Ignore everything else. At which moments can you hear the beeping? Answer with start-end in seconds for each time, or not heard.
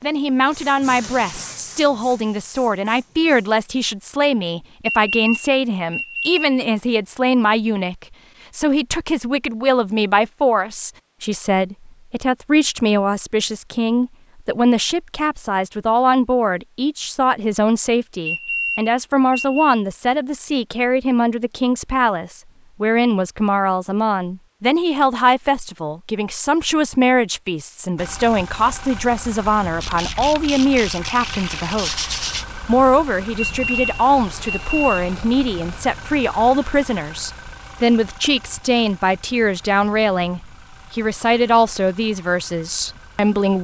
4.8-6.5, 18.2-19.8, 33.4-35.1.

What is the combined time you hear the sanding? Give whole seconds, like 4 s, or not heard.
3 s.